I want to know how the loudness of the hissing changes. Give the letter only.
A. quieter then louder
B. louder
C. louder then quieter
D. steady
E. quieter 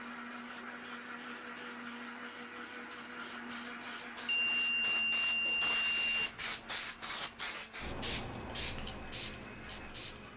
B.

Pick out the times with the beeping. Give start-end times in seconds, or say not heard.
4.2-6.2.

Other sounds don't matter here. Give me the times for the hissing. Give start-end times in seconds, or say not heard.
0.0-10.3.